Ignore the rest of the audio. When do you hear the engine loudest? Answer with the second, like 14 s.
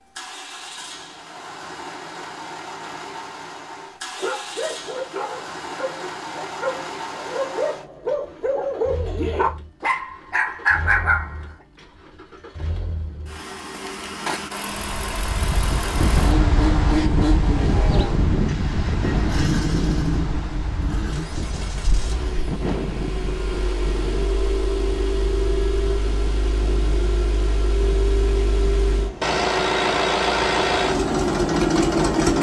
32 s.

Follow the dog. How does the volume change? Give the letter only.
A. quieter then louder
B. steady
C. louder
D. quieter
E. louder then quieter
C.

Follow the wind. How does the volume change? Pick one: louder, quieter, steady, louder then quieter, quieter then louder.
quieter.